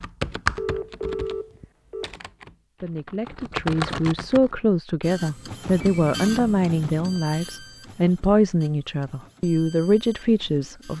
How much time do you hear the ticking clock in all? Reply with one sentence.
The ticking clock can't be heard in this clip.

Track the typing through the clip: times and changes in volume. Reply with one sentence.
The typing can be heard from 0.0 to 4.5 s, getting quieter then louder.